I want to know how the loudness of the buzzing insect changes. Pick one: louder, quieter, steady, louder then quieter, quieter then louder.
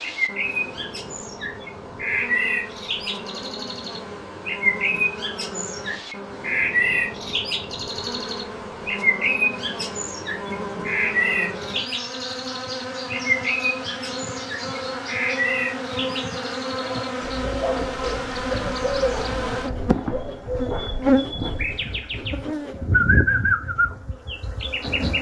louder.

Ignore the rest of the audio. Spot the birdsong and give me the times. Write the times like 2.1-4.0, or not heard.
0.0-25.1.